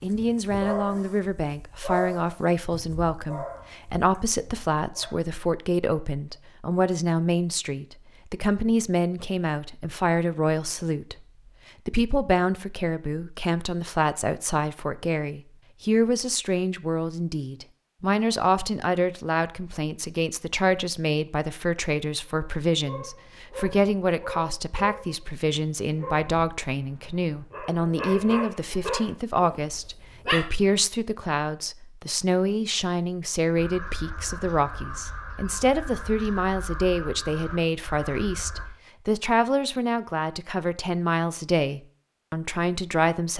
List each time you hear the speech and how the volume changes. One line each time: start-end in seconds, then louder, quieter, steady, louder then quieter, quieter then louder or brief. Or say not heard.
0.0-11.2 steady
11.8-43.3 steady.